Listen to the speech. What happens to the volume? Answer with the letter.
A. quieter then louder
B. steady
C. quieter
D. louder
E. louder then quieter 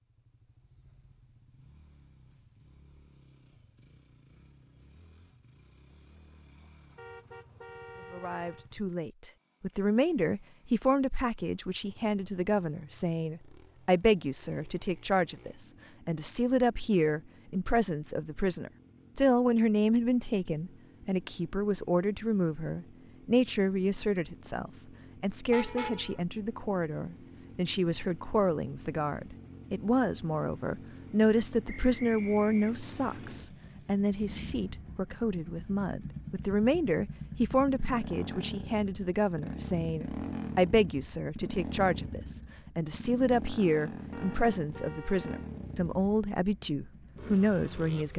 B.